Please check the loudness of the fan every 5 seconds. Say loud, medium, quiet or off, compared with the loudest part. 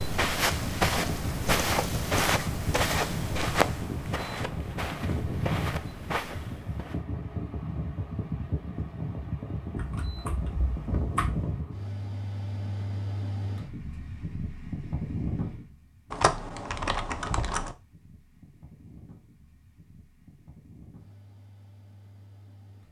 loud, loud, loud, medium, quiet.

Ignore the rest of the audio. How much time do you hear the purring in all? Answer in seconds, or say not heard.
not heard.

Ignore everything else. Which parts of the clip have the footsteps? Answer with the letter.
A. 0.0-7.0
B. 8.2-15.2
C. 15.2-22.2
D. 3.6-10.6
A.